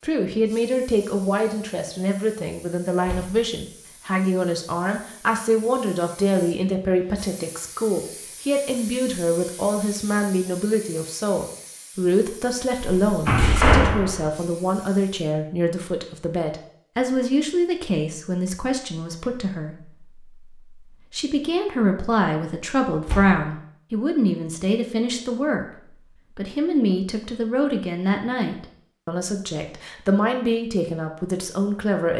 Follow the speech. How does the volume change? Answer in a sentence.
The loudness of the speech stays about the same.